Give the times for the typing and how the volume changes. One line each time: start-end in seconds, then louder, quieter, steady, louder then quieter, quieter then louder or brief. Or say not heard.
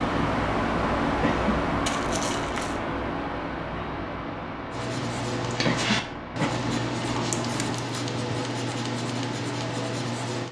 not heard.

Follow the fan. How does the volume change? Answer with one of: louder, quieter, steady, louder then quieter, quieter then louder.
quieter.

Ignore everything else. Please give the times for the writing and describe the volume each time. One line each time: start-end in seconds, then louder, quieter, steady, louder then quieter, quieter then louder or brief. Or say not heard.
4.7-10.4 steady.